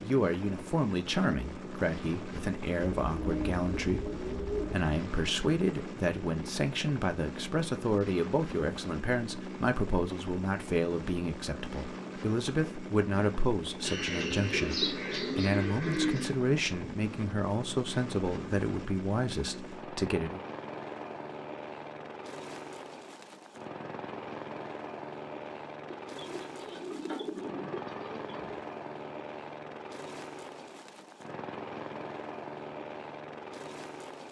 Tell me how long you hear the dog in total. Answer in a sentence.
You can't hear the dog here.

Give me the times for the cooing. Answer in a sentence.
You can hear the cooing from 3.0 to 4.8 s, from 13.8 to 16.4 s and from 25.9 to 28.6 s.